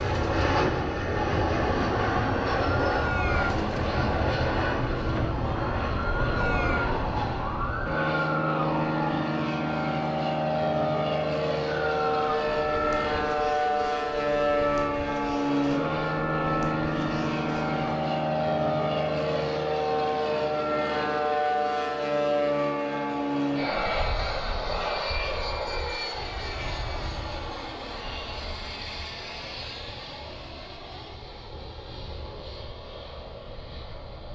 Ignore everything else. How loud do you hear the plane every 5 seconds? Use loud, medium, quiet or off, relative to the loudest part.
loud, loud, loud, loud, loud, medium, quiet.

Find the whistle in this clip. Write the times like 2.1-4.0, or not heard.
not heard.